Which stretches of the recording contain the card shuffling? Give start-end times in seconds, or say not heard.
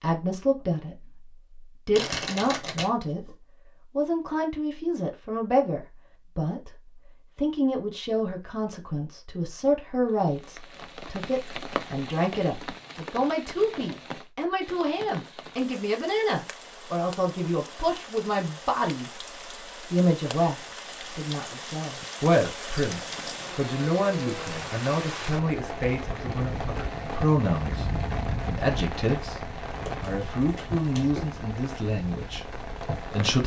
1.9-3.3, 29.9-31.2.